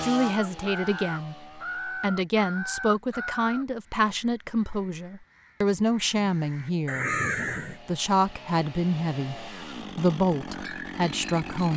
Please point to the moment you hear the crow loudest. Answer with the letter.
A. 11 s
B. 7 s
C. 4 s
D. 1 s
B.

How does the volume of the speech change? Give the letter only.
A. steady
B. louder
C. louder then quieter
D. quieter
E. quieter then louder
A.